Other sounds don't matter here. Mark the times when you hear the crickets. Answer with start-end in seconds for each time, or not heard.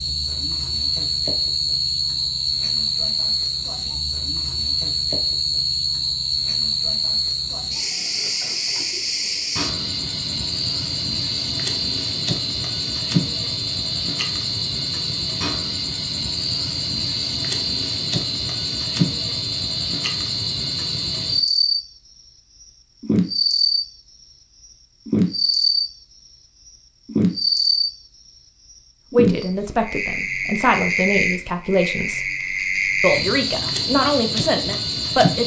0.0-23.9, 25.1-27.9, 29.1-35.4.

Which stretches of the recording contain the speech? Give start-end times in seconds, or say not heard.
29.1-32.2, 33.0-35.4.